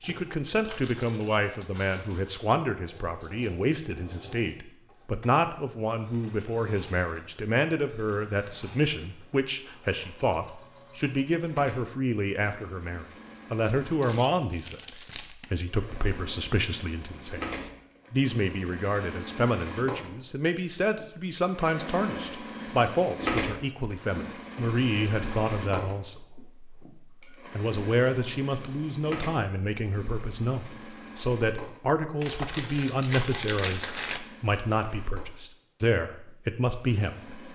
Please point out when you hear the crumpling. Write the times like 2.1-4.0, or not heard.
0.6-2.5, 14.0-15.5, 32.2-34.2.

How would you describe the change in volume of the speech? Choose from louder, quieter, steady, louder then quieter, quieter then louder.
steady.